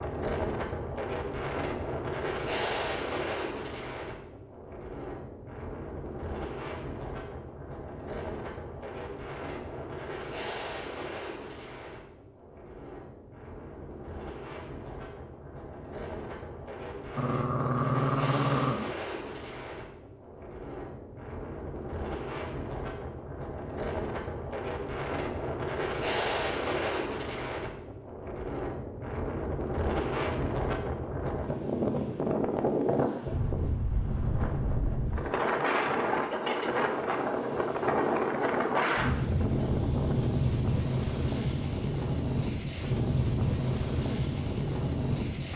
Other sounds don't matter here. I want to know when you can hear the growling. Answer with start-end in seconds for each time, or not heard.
17.1-18.8.